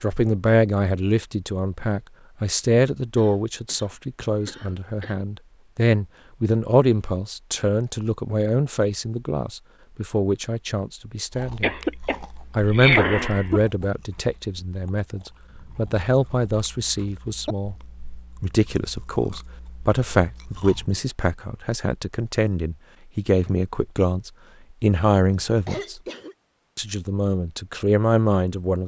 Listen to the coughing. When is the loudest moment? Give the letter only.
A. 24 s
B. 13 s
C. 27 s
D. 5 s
B.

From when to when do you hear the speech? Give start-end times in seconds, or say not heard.
0.0-11.8, 12.6-17.8, 18.4-26.0, 26.8-28.8.